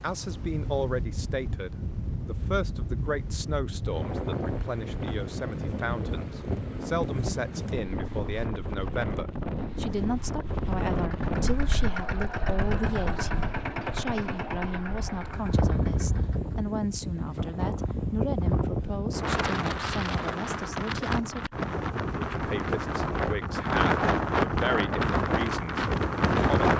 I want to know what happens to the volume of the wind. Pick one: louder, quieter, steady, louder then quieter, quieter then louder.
louder.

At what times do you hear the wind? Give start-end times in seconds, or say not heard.
0.0-26.7.